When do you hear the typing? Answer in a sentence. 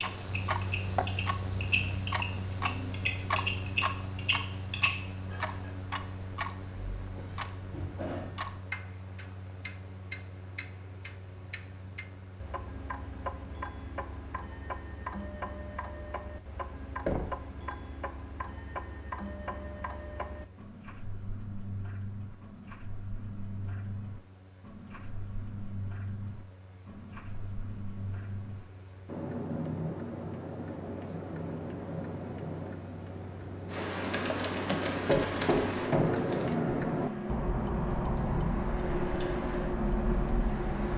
You can hear the typing from 0.0 to 5.0 s and from 33.7 to 39.4 s.